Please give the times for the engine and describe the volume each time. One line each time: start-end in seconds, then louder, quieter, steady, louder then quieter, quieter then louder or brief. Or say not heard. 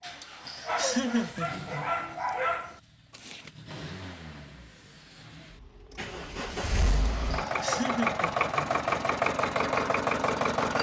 0.0-10.7 louder.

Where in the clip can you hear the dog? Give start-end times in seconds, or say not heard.
0.0-3.5.